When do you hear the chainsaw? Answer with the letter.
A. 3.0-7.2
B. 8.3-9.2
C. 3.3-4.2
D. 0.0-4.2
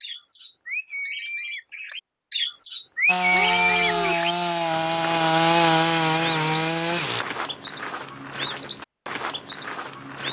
A.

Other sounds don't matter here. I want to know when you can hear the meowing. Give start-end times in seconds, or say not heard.
3.3-4.2.